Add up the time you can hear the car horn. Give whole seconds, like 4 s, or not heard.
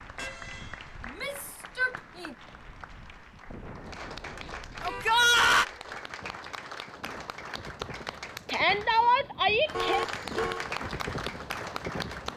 3 s.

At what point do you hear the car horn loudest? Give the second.
10 s.